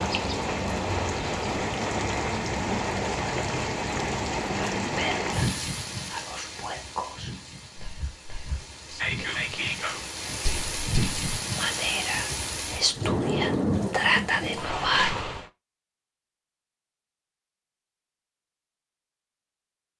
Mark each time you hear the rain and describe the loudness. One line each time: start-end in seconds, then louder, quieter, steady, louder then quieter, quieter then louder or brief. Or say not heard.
0.0-15.5 quieter then louder.